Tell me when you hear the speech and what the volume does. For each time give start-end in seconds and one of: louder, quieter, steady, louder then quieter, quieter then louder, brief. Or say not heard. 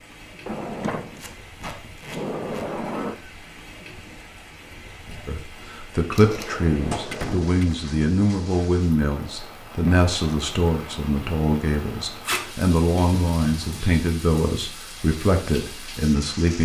5.2-16.6 steady.